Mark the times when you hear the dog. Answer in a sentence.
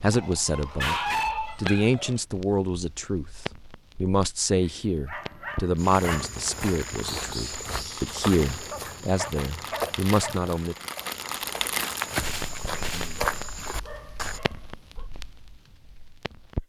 You can hear the dog from 0.1 to 2.2 s, from 5.0 to 6.2 s, from 8.7 to 10.4 s and from 12.9 to 15.1 s.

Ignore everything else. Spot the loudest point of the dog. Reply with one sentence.
The loudest moment of the dog is at 1 second.